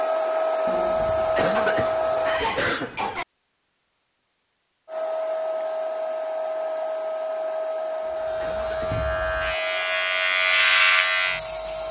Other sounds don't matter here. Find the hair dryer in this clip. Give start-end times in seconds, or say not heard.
0.0-2.5, 4.8-11.8.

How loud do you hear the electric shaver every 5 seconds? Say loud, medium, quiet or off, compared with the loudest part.
off, medium, loud.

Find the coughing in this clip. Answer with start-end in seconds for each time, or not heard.
1.4-3.2, 8.3-8.9.